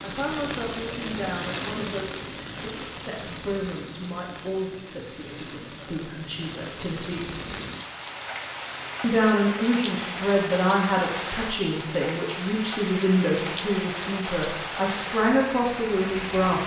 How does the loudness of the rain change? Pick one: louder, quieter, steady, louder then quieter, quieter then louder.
quieter then louder.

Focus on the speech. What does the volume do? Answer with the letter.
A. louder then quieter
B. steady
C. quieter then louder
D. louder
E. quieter
D.